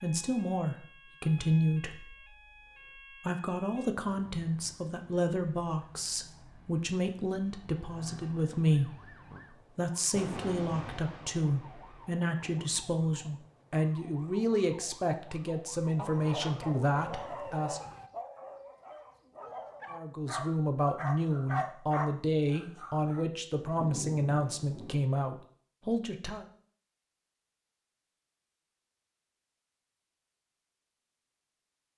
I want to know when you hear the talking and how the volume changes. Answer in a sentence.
The talking can be heard from 0.0 to 17.8 s, at a steady volume; and from 19.9 to 26.4 s, at a steady volume.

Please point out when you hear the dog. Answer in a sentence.
You can hear the dog from 15.9 to 23.2 s.